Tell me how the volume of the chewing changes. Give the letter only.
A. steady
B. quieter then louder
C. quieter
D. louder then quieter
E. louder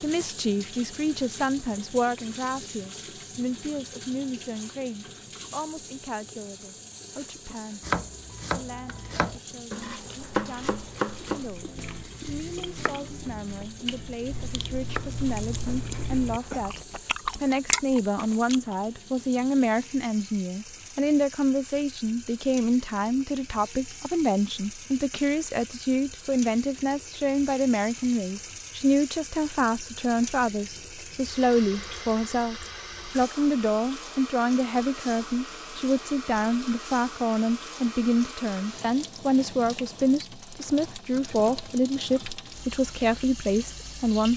E.